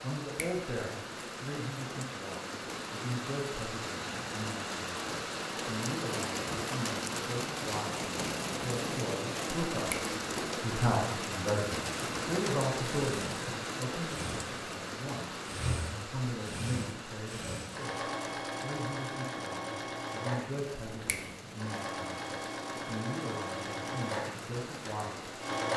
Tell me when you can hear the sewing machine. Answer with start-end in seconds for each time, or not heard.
11.9-25.7.